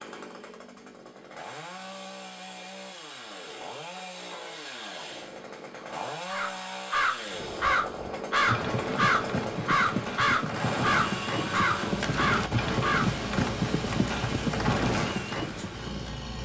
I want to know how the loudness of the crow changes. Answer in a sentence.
The loudness of the crow stays about the same.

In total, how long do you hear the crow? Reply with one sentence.
You can hear the crow for 7 seconds altogether.